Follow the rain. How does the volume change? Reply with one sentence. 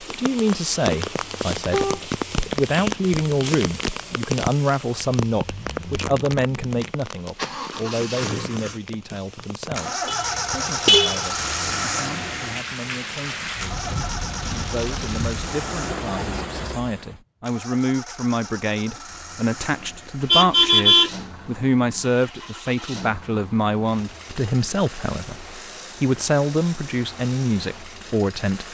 The loudness of the rain goes down, then up.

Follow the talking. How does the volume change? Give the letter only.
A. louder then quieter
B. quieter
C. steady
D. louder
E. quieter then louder
E.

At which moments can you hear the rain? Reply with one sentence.
You can hear the rain from 0.0 to 17.2 s.